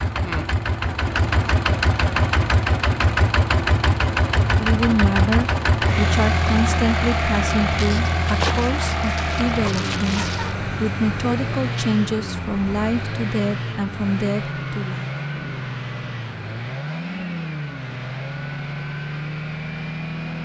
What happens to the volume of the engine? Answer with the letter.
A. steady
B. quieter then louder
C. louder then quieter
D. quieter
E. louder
D.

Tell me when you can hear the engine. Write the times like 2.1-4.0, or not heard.
0.0-20.3.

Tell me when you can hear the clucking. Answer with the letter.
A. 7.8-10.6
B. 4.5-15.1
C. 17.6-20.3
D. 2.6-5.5
A.